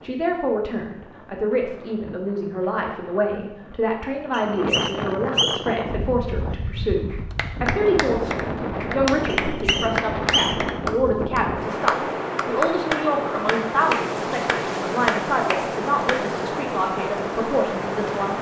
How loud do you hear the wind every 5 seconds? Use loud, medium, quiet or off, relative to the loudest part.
medium, loud, loud, loud.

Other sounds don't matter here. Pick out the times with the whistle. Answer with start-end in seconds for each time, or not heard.
4.3-5.8, 9.4-10.8.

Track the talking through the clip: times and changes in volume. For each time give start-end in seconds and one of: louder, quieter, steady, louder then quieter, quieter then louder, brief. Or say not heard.
0.0-18.3 steady.